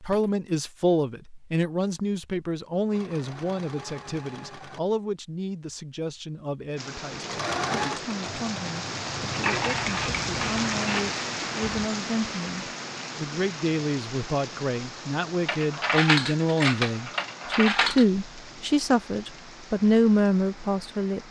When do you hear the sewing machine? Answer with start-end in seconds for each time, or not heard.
2.9-4.8, 7.1-11.9.